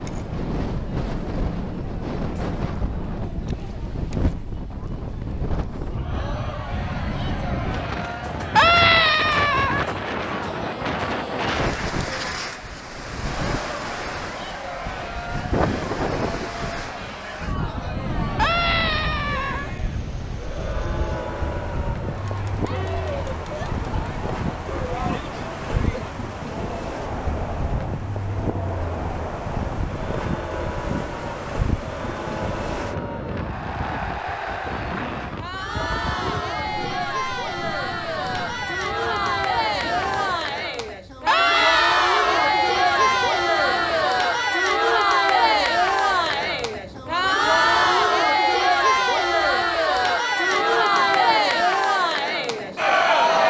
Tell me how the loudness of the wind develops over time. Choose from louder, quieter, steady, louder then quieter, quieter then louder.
quieter.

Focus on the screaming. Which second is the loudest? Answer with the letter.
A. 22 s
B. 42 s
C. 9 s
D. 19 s
C.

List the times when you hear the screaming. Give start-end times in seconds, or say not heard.
8.6-9.9, 18.4-19.7, 41.2-42.5.